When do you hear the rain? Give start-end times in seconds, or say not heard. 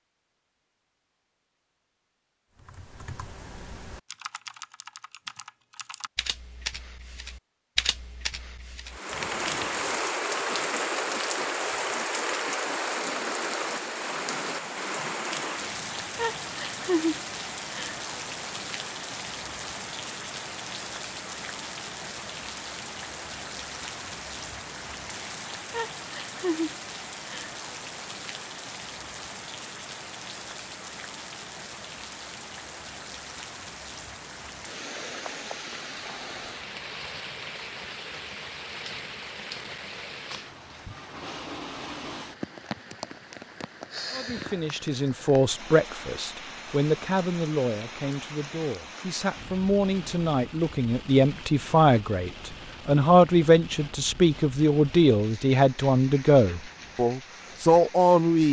8.9-58.4.